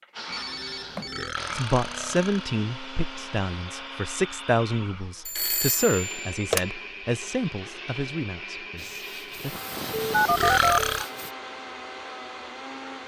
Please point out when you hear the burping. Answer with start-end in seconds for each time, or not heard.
1.1-2.5, 10.2-11.1.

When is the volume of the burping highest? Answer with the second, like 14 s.
11 s.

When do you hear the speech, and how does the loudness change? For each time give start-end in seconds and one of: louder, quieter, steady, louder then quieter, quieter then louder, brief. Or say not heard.
1.5-9.6 quieter.